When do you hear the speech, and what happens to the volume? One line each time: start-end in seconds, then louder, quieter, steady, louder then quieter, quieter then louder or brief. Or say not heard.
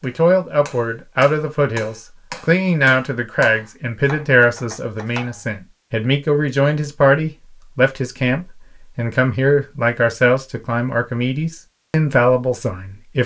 0.0-13.2 steady.